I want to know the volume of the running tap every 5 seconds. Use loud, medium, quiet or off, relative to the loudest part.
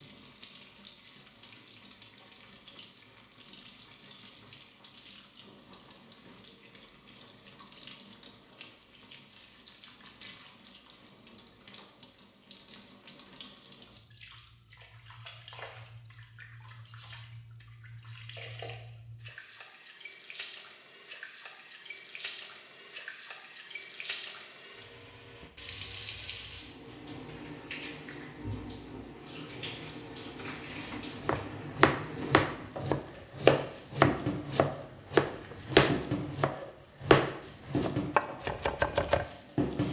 quiet, quiet, quiet, medium, medium, medium, loud, loud.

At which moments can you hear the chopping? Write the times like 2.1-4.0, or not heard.
31.2-39.2.